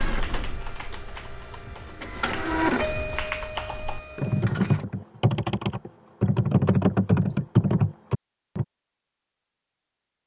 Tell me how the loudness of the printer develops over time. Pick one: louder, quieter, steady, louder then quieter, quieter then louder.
louder then quieter.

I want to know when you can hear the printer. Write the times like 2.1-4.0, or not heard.
0.0-4.8.